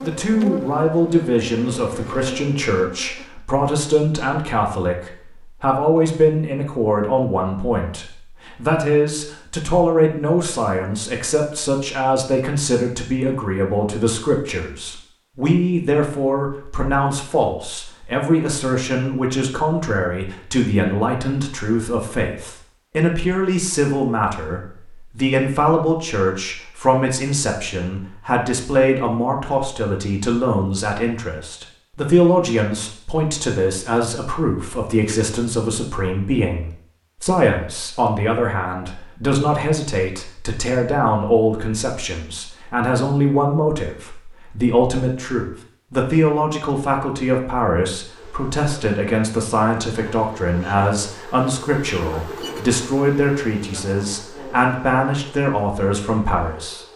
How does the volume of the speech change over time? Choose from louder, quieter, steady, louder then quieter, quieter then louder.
steady.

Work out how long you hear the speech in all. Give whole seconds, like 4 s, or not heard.
57 s.